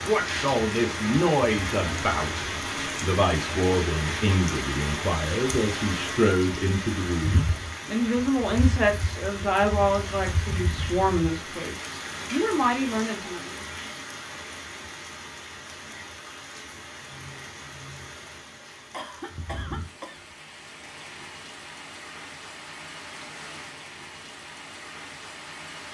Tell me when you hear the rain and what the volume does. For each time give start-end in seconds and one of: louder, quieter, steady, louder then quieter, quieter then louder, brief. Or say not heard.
0.0-25.8 quieter.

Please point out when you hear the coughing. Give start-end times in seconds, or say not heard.
18.9-20.2.